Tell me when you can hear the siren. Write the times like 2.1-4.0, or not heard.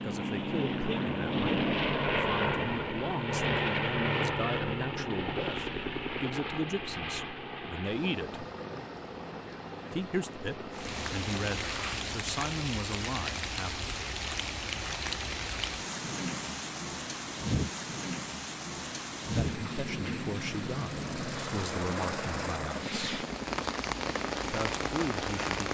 not heard.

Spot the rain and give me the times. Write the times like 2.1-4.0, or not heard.
10.7-25.6.